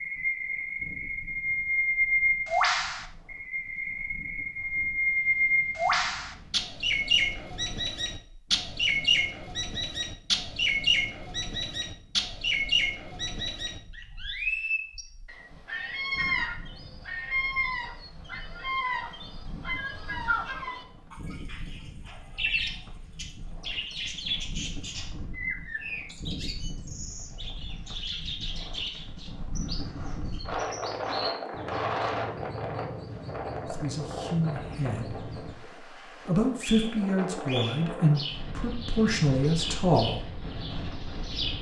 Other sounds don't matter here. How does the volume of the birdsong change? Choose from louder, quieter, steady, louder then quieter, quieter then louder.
quieter.